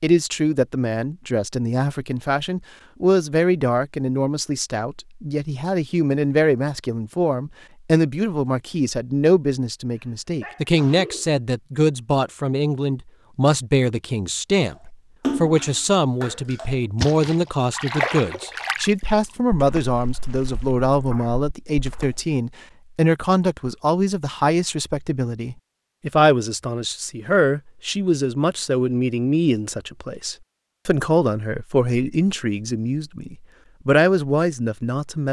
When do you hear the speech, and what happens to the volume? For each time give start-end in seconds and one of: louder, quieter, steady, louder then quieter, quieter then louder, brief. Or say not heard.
0.0-35.2 steady.